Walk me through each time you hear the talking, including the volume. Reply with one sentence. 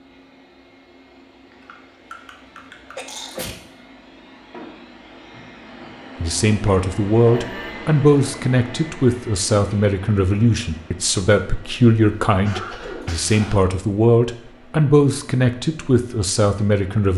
You can hear the talking from 6.2 to 17.1 s, at a steady volume.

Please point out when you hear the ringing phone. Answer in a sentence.
The ringing phone can't be heard in this clip.